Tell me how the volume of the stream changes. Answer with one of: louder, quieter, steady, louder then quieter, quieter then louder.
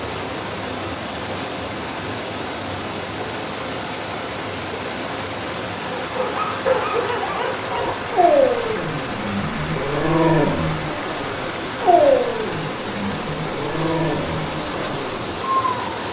steady.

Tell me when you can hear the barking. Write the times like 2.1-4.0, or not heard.
6.0-15.9.